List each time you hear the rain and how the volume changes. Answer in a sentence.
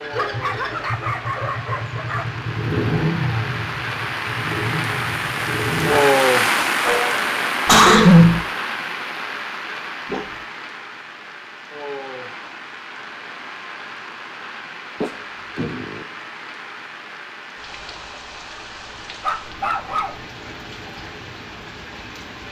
You can hear the rain from 0.0 to 22.4 s, getting louder then quieter.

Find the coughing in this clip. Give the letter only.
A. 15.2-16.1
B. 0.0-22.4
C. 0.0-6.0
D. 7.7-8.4
D.